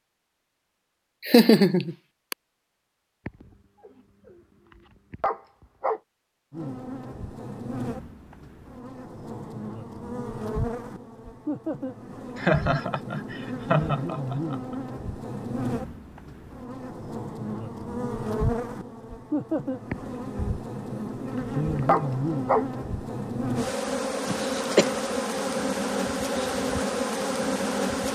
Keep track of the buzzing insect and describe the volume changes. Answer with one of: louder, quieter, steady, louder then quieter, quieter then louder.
louder.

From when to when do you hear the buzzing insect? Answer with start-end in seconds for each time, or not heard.
6.5-28.0.